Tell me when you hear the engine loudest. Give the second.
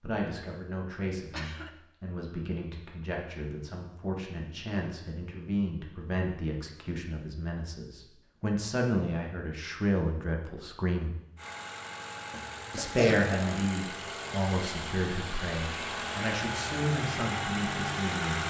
18 s.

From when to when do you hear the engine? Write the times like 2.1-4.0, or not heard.
11.3-18.4.